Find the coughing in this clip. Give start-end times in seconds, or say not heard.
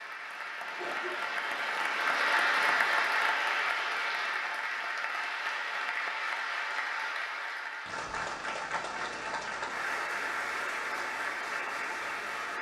0.8-1.6.